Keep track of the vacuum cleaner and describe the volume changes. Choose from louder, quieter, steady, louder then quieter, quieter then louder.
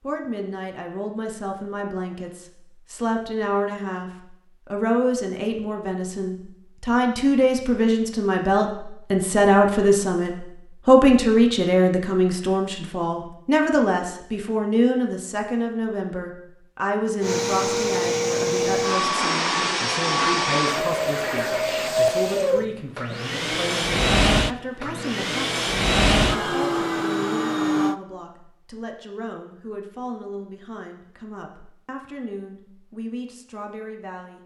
steady.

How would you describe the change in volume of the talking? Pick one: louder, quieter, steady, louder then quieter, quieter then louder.
louder then quieter.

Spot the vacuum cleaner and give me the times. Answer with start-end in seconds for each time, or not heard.
17.2-27.9.